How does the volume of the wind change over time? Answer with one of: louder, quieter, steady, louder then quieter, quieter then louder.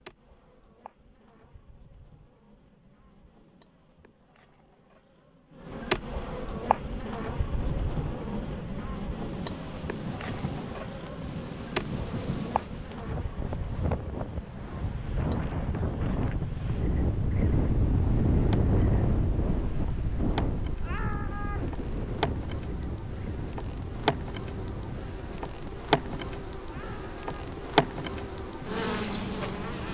louder then quieter.